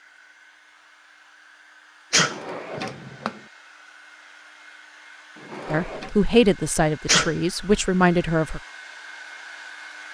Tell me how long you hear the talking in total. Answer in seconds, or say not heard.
3 s.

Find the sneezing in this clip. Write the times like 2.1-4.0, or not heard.
2.1-2.8, 7.0-7.8.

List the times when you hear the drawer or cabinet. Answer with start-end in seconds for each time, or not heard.
2.1-3.4, 5.3-6.2.